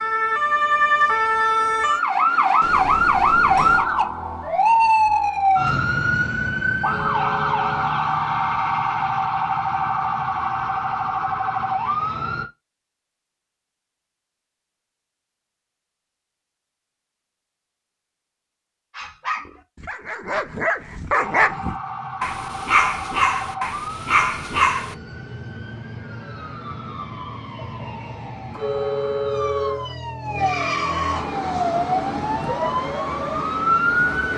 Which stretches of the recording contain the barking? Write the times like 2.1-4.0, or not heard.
18.9-24.9.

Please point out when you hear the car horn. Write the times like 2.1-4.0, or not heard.
6.8-8.0, 28.5-29.9.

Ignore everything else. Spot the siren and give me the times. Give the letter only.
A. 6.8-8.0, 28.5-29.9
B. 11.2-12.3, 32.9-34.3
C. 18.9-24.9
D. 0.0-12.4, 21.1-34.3
D.